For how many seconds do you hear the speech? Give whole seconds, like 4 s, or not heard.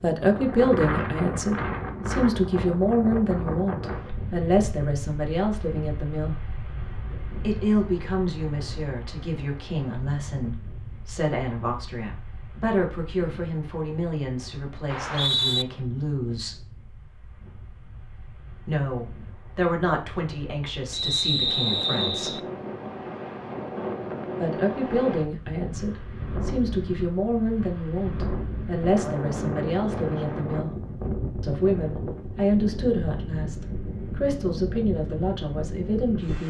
31 s.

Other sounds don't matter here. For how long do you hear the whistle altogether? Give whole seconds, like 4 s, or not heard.
2 s.